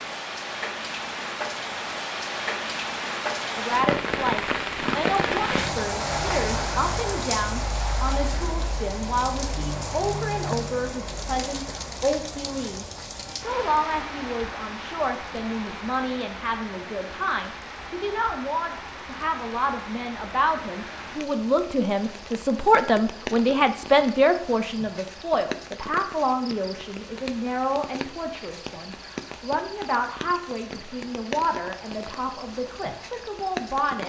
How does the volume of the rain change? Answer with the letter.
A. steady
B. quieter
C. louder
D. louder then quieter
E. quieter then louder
B.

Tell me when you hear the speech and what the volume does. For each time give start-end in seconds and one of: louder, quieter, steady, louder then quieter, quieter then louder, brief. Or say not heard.
3.5-34.0 louder then quieter.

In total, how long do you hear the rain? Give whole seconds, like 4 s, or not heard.
34 s.